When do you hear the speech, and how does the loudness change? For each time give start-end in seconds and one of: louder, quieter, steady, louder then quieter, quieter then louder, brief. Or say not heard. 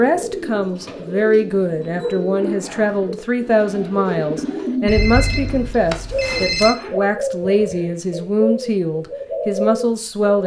0.0-10.4 steady.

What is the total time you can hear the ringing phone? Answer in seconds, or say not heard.
2 s.